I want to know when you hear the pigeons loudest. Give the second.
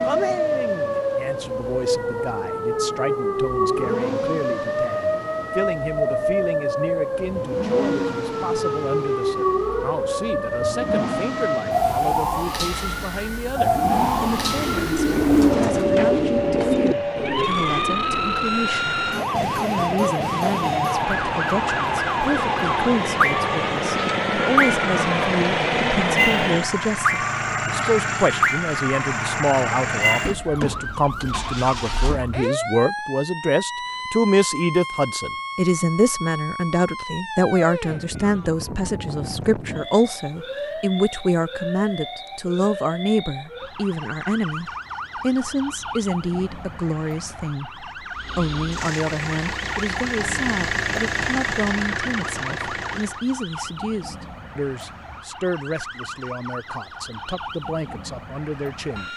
15 s.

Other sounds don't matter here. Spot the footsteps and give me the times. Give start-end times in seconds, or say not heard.
not heard.